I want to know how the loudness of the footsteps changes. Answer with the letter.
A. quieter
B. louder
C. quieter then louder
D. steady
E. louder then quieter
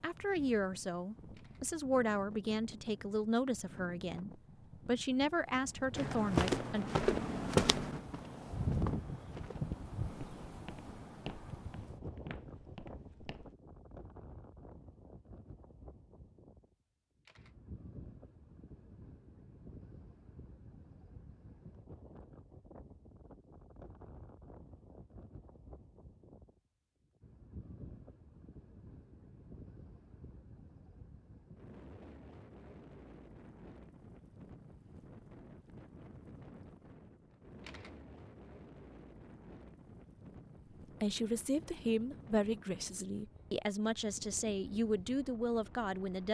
A.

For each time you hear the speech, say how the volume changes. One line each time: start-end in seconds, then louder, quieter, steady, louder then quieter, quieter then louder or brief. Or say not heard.
0.0-6.8 steady
41.0-46.2 steady.